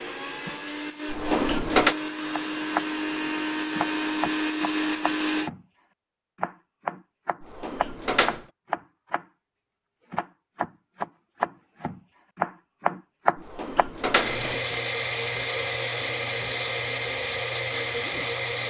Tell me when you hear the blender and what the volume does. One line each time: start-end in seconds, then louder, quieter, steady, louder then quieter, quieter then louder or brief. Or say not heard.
0.0-5.5 louder
14.2-18.6 steady.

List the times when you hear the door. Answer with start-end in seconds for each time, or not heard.
1.1-1.9, 7.4-8.4, 13.3-14.6.